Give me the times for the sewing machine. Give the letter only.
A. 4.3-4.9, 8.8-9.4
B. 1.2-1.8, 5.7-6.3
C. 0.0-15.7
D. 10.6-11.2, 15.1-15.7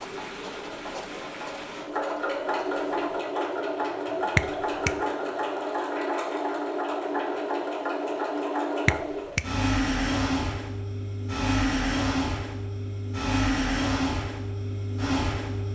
C.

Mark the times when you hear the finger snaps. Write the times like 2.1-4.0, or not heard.
4.3-4.9, 8.8-9.4.